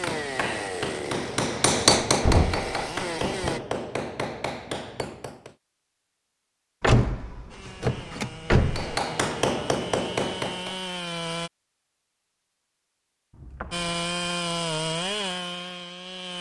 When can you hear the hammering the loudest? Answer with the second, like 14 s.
2 s.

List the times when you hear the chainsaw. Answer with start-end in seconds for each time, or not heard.
0.0-3.6, 7.5-11.5, 13.7-16.3.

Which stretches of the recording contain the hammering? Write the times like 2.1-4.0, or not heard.
0.0-5.5, 8.8-10.8.